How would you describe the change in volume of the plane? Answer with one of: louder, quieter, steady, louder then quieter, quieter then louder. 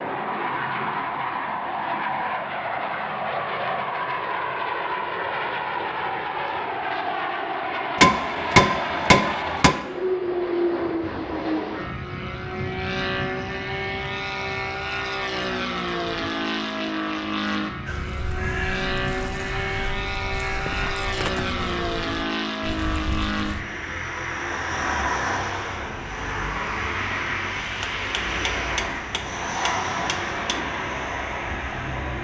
steady.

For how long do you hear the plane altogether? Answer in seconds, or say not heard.
32 s.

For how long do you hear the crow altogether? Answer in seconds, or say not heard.
6 s.